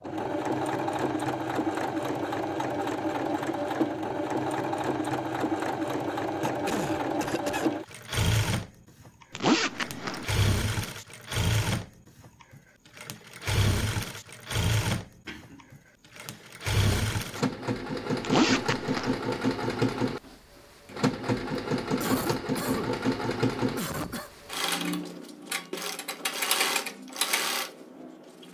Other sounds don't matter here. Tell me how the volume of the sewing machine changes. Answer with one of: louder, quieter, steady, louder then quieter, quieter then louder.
steady.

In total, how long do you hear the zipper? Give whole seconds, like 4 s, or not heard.
2 s.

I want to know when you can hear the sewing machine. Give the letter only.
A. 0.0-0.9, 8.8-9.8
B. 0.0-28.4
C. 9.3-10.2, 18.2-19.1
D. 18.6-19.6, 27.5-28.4
B.